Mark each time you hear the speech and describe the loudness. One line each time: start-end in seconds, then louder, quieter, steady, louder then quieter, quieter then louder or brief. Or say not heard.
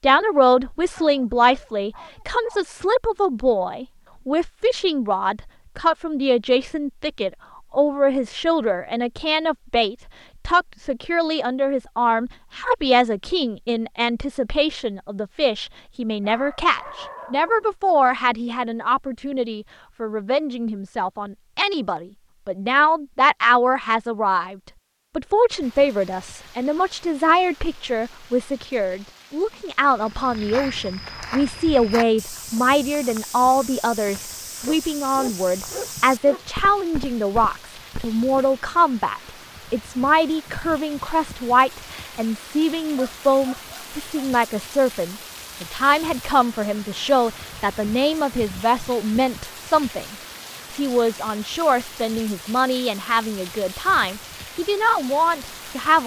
0.0-56.0 steady.